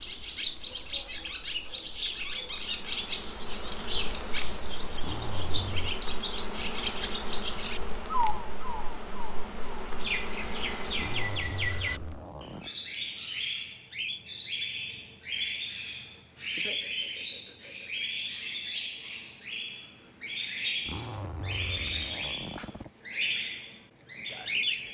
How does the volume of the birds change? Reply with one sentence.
The loudness of the birds stays about the same.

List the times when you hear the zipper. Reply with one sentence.
You can hear the zipper from 5.0 to 6.0 s, from 10.9 to 12.7 s and from 20.8 to 22.9 s.